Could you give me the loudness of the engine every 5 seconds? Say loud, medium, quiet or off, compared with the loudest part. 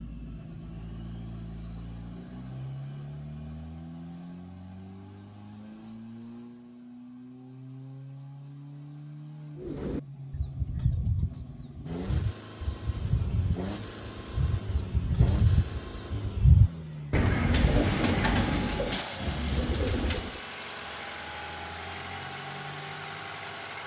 loud, medium, loud, loud, loud.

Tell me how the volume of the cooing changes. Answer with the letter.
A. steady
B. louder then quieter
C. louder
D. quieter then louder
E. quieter
B.